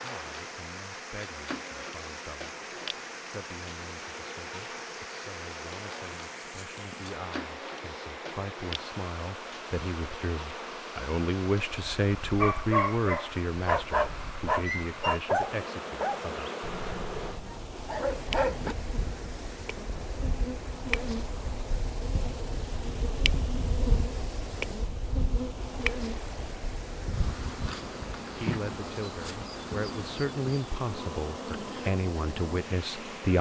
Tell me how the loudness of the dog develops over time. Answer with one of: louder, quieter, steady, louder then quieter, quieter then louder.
quieter then louder.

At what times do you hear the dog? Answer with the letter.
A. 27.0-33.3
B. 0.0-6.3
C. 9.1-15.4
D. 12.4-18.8
D.